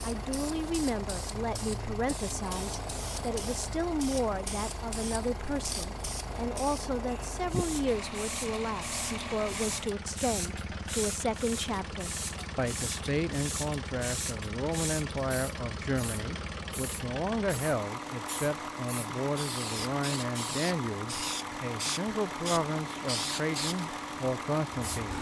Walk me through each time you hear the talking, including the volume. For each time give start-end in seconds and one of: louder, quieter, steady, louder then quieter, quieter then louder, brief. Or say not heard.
0.0-25.1 steady.